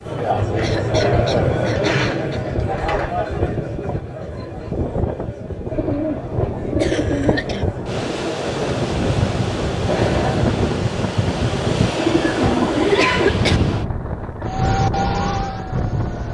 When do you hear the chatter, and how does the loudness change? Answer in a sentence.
The chatter can be heard from 0.0 to 10.4 s, getting quieter then louder.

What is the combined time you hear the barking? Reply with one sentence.
The barking can't be heard in this clip.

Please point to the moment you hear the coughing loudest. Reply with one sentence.
The volume of the coughing peaks at 13 seconds.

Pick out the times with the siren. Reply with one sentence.
The siren can be heard from 14.4 to 16.2 s.